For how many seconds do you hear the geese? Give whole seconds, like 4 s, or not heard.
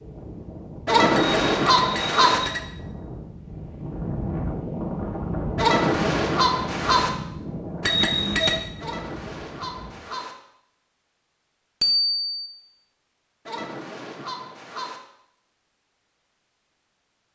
6 s.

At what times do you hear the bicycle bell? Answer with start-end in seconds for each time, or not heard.
1.1-2.6, 7.8-8.6, 11.8-12.4.